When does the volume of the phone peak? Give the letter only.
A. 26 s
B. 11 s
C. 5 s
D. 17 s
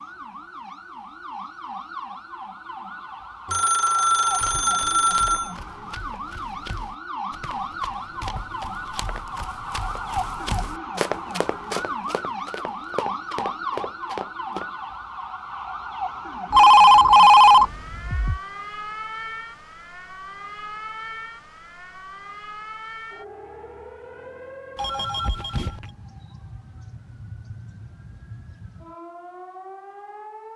D.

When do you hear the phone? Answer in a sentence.
The phone can be heard from 3.5 to 5.5 s, from 16.5 to 18.4 s and from 24.8 to 25.9 s.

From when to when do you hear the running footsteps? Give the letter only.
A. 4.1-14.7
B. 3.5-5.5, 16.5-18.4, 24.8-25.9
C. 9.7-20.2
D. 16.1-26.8
A.